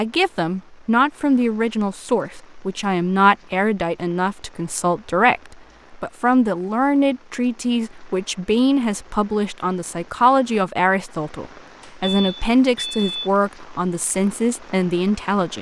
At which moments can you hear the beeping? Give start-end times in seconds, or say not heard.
11.8-13.3.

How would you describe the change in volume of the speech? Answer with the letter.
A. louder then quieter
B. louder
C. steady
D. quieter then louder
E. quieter
C.